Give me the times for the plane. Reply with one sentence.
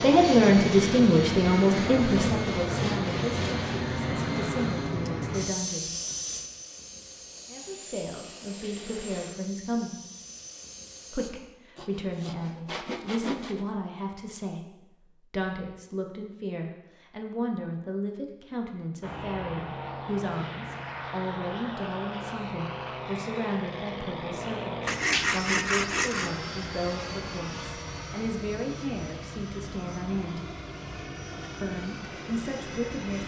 The plane can be heard from 0.0 to 11.3 s and from 19.0 to 33.2 s.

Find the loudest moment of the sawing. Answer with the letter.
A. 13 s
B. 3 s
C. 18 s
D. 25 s
D.